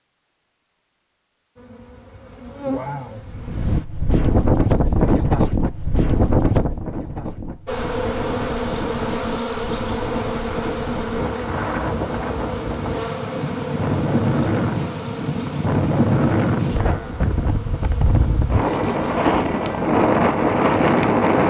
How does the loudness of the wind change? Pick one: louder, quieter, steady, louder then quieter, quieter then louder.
quieter then louder.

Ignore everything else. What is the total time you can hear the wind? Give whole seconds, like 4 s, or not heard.
18 s.